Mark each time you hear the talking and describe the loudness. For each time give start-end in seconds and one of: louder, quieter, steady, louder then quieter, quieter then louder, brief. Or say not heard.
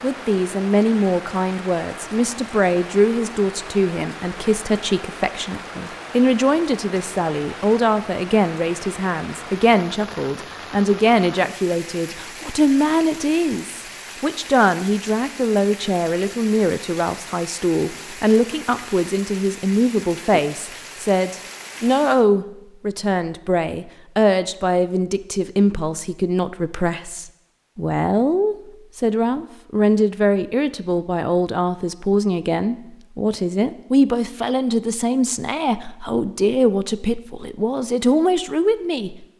0.0-39.2 steady.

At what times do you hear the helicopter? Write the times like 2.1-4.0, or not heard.
not heard.